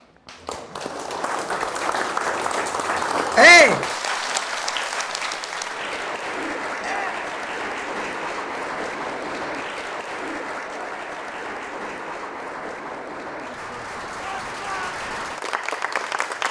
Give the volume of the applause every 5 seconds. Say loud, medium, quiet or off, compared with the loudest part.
loud, loud, medium, loud.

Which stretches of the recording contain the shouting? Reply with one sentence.
You can hear the shouting from 3.4 to 3.8 s, from 6.8 to 7.2 s and from 14.2 to 14.9 s.